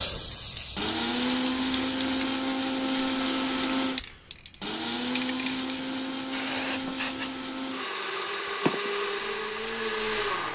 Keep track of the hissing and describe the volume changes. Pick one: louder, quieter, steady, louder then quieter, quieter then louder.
steady.